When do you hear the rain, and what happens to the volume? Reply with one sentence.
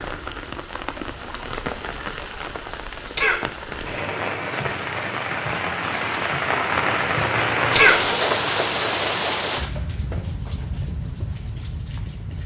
You can hear the rain from 0.0 to 12.4 s, getting louder then quieter.